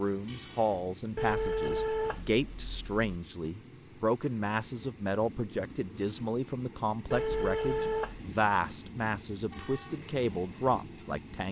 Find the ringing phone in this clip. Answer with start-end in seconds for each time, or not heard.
1.1-3.2, 7.1-8.2.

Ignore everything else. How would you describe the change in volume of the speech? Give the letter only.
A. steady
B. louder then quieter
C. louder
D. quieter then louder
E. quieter
A.